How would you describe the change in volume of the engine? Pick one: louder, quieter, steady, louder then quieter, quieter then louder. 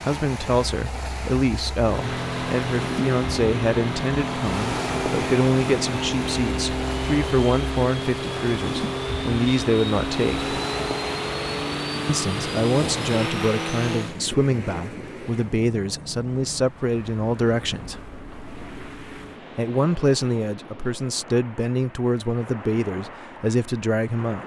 steady.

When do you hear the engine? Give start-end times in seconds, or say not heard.
1.8-14.2.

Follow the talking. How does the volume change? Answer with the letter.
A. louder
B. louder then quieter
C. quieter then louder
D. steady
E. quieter
D.